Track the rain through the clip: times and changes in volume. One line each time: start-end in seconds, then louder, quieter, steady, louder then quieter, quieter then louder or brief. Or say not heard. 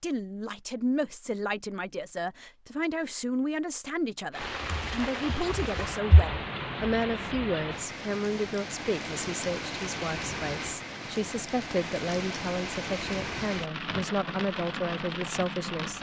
4.3-15.9 steady.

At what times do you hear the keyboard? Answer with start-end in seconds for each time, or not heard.
4.7-6.3.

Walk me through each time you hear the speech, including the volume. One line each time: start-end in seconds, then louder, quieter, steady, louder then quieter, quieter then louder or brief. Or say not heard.
0.0-15.9 steady.